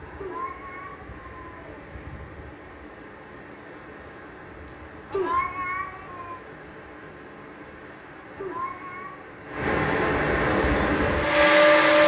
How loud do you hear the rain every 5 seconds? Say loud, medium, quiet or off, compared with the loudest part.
quiet, medium, loud.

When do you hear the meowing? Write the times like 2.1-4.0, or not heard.
0.1-1.9, 5.1-6.4, 8.3-9.2.